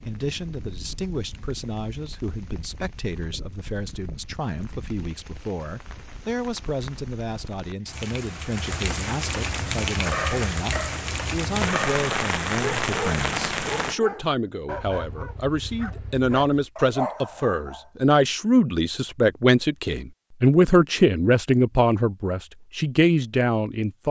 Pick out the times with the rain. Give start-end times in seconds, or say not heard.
0.0-13.9.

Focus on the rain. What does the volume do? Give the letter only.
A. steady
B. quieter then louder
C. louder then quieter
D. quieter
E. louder
E.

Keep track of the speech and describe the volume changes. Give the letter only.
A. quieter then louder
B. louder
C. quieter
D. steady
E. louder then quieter
B.